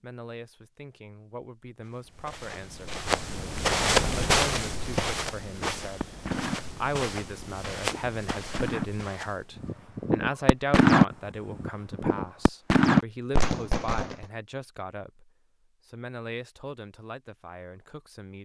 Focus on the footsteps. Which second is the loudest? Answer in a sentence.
The loudest moment of the footsteps is at 4 seconds.